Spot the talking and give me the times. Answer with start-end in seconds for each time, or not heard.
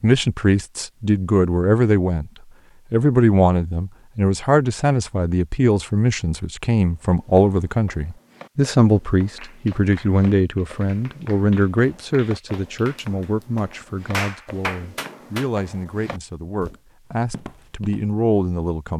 0.0-2.3, 2.9-18.9.